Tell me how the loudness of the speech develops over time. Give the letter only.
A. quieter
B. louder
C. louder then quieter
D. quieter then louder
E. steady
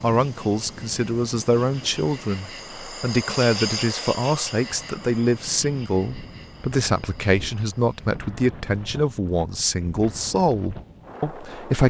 E.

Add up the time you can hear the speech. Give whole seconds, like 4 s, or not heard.
12 s.